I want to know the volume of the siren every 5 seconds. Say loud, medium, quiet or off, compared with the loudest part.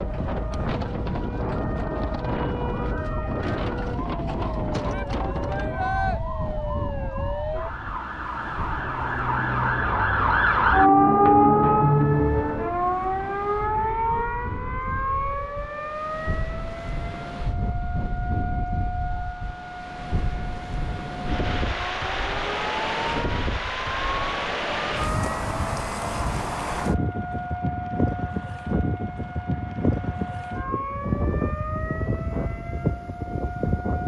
quiet, medium, loud, quiet, quiet, quiet, quiet.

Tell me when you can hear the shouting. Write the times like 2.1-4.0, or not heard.
4.9-6.2.